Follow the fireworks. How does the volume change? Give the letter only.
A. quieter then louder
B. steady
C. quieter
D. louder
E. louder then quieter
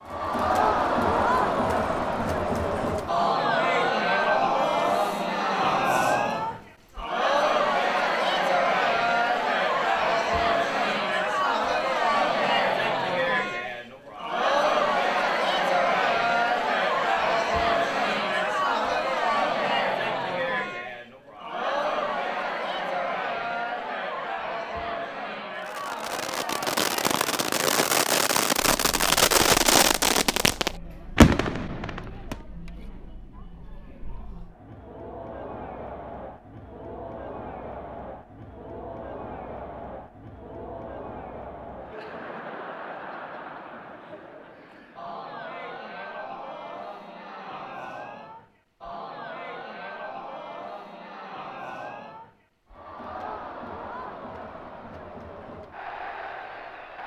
D.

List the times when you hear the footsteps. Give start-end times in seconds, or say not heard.
not heard.